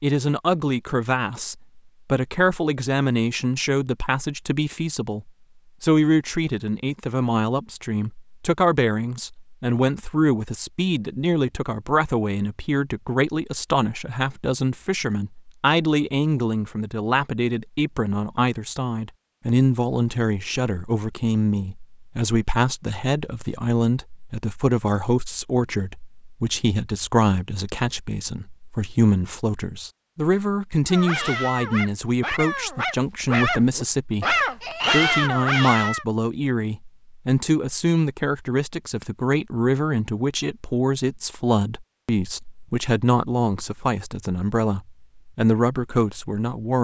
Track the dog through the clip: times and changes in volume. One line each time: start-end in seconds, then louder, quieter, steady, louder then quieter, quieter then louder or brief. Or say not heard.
30.9-36.0 louder.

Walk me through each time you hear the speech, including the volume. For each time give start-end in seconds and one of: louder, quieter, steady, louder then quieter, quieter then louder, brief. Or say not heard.
0.0-46.7 steady.